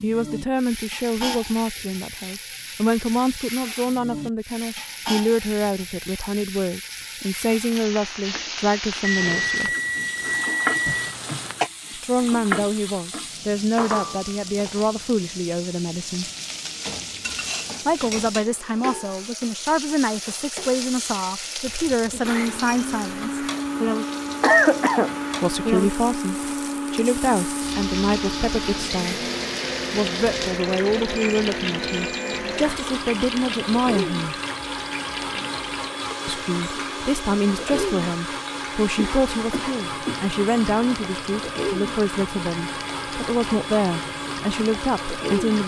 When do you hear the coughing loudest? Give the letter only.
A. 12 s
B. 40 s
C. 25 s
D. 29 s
C.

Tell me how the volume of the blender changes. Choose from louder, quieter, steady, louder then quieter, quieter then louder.
steady.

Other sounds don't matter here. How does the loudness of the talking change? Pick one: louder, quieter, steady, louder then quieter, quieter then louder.
steady.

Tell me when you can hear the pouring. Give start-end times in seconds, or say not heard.
not heard.